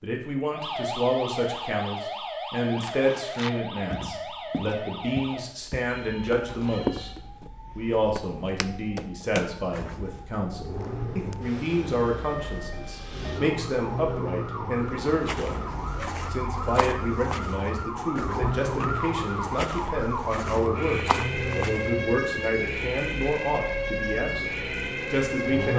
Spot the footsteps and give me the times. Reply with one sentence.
You can hear the footsteps from 2.8 to 10.2 s and from 15.1 to 21.9 s.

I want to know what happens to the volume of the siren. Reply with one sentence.
The volume of the siren goes down, then up.